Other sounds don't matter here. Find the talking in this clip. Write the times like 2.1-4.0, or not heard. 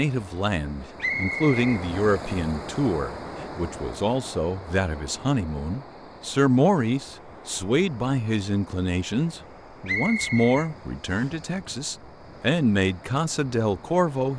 0.0-14.3.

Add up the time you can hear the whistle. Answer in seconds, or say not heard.
2 s.